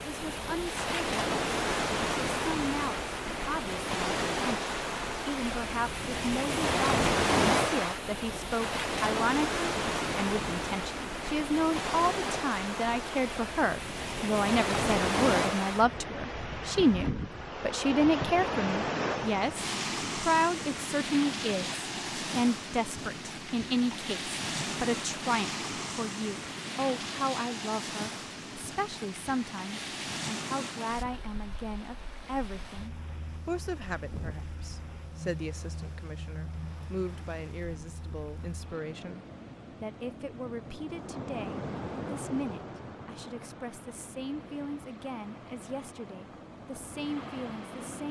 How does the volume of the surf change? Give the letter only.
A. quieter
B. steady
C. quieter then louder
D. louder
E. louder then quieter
A.